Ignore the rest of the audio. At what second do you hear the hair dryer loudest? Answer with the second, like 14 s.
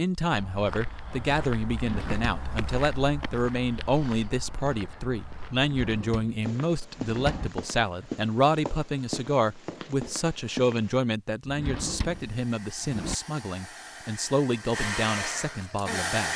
16 s.